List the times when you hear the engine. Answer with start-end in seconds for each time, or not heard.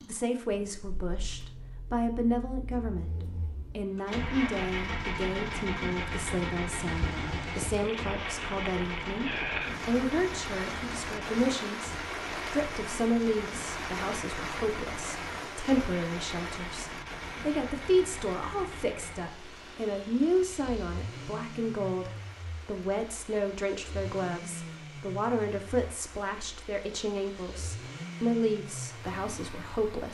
0.0-30.0.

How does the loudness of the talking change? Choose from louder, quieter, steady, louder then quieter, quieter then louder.
steady.